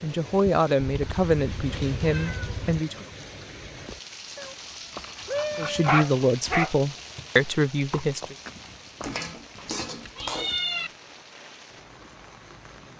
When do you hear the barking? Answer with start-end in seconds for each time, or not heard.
4.9-6.7.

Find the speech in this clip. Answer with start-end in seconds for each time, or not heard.
0.0-3.0, 5.5-8.3.